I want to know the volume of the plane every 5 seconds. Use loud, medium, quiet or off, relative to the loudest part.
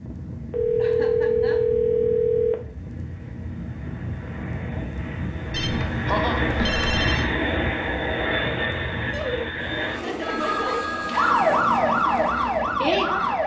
medium, loud, medium.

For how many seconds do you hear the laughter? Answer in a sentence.
You can hear the laughter for 4 seconds altogether.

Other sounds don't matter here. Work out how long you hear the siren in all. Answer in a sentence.
The siren can be heard for 4 seconds in total.